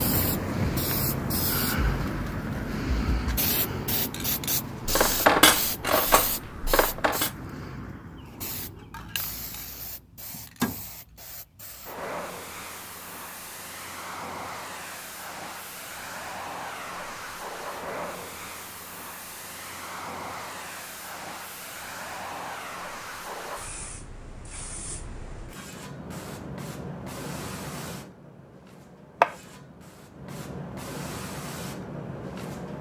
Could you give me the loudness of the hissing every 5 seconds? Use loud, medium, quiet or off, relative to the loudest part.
loud, medium, medium, medium, medium, loud, medium.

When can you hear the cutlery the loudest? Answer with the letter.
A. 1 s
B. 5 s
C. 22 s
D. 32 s
B.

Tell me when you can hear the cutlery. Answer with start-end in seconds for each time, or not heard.
4.8-7.3.